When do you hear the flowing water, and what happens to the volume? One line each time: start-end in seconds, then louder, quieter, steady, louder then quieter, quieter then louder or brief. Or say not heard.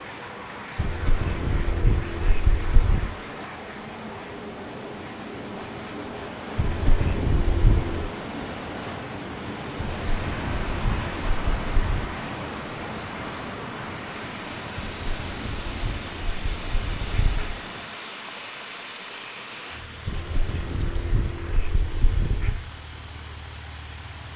0.0-24.3 louder then quieter.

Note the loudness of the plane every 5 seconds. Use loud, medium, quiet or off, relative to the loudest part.
loud, loud, loud, loud, medium.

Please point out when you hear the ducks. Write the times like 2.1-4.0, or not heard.
0.8-3.1, 6.5-8.1, 10.0-12.1, 14.8-17.6, 20.1-22.6.